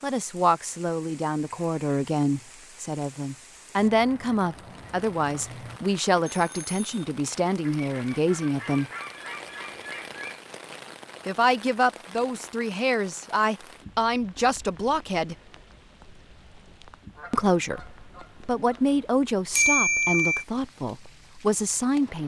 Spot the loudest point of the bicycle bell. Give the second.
20 s.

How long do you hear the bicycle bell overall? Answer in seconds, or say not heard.
2 s.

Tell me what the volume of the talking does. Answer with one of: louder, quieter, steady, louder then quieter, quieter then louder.
steady.